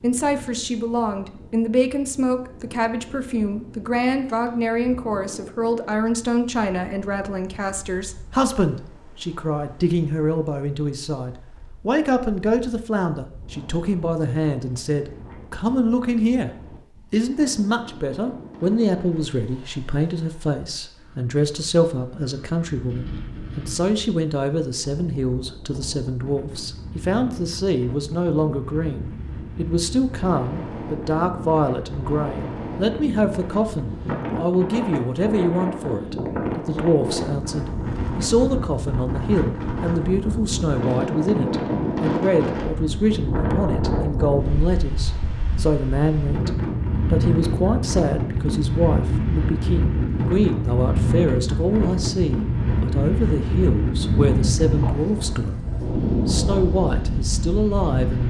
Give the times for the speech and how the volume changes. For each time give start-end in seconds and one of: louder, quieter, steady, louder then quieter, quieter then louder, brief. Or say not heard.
0.0-16.5 steady
17.1-46.5 steady
47.1-58.2 steady.